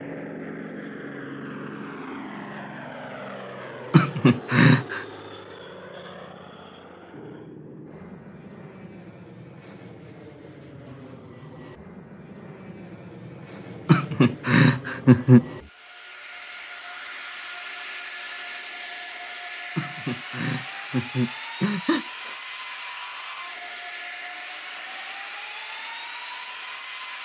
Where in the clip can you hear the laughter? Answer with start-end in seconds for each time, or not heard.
3.9-5.0, 13.8-15.4, 19.8-22.3.